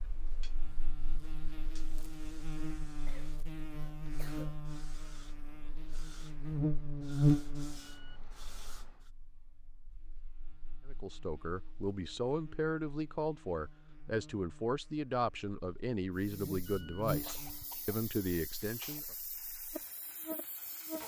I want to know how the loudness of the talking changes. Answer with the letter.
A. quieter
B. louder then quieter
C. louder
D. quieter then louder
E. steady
E.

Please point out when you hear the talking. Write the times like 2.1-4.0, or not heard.
10.8-19.1.